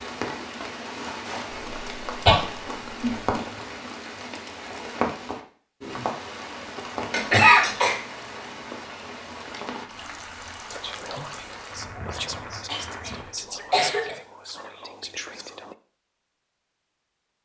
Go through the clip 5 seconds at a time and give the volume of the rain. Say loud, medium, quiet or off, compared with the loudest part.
loud, loud, medium, off.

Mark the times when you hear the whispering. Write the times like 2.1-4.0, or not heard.
10.7-15.8.